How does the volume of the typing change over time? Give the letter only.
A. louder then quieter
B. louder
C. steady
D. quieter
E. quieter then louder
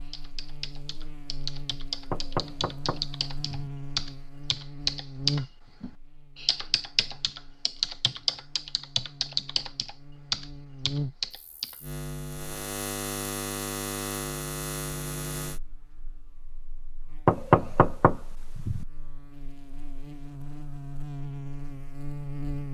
B.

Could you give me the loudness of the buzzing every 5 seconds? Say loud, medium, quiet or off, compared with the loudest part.
medium, medium, loud, medium, loud.